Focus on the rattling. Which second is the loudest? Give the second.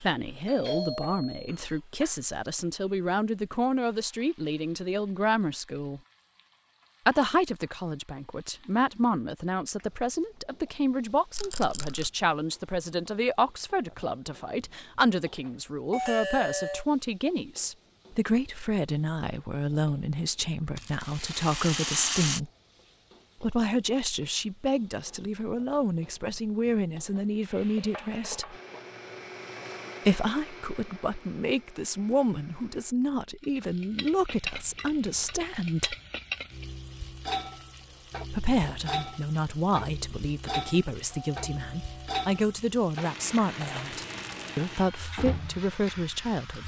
22 s.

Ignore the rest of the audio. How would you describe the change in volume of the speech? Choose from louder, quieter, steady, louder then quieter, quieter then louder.
steady.